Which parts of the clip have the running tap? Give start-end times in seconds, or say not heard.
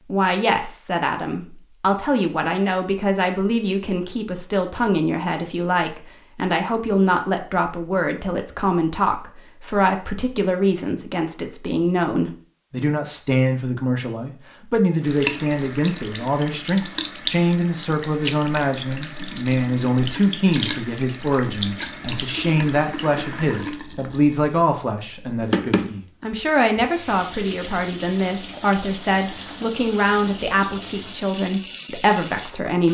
15.0-32.8.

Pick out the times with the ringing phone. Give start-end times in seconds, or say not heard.
not heard.